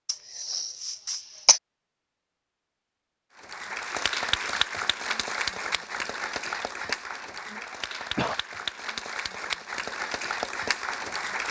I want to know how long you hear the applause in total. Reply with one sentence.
You can hear the applause for 8 seconds altogether.